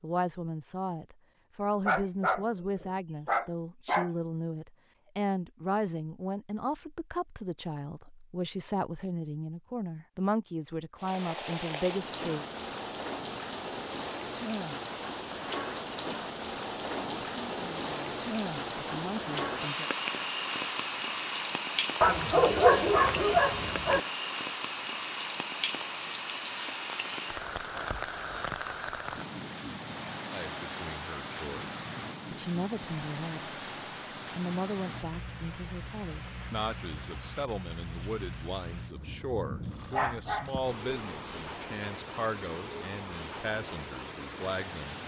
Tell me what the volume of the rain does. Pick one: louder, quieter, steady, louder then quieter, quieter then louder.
quieter.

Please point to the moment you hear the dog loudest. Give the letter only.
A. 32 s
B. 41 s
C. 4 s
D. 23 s
D.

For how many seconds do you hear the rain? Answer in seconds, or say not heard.
34 s.